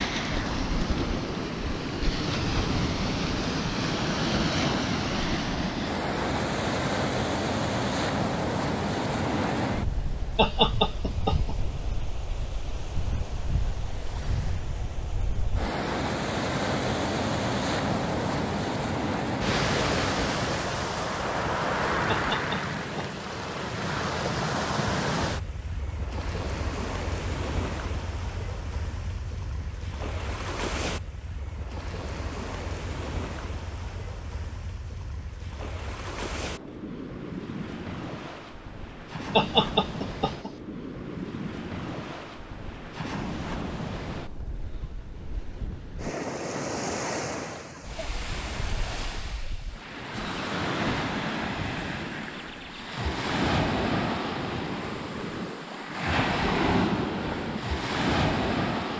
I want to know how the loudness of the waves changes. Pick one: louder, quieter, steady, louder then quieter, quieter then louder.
quieter then louder.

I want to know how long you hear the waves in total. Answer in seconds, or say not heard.
59 s.